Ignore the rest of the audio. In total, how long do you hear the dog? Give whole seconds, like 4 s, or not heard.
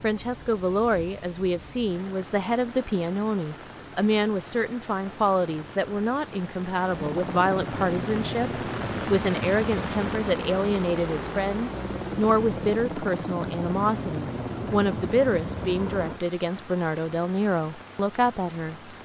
not heard.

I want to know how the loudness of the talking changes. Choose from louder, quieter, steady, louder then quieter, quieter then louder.
steady.